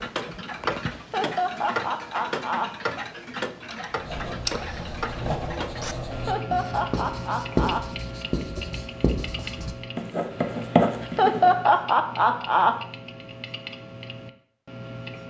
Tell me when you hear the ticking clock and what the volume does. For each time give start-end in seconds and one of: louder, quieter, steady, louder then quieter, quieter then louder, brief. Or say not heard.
0.0-15.2 quieter.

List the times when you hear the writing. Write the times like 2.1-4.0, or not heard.
3.9-11.6.